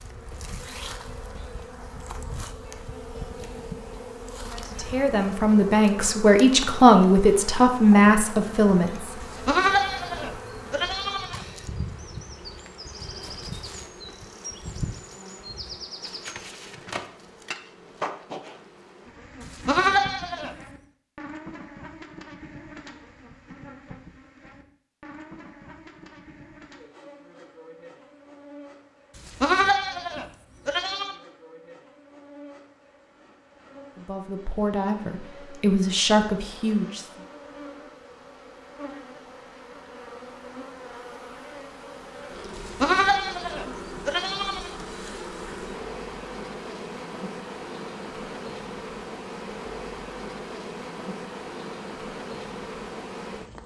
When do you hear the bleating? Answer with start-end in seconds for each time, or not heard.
9.2-11.4, 19.4-20.6, 29.1-31.1, 42.5-44.8.